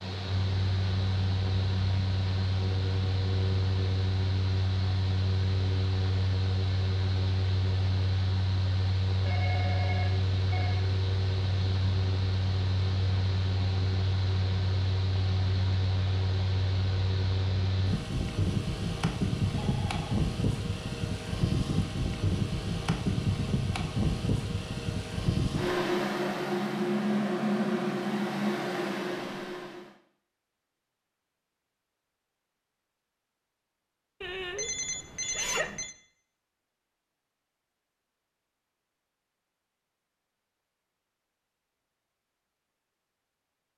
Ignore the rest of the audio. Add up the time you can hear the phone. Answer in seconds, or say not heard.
4 s.